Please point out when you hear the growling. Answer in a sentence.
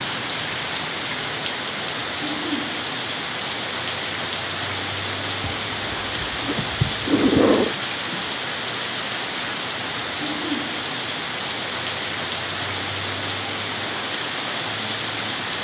The growling can be heard from 5.4 to 7.8 s.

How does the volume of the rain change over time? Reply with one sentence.
The loudness of the rain stays about the same.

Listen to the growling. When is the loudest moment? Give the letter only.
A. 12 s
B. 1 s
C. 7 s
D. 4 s
C.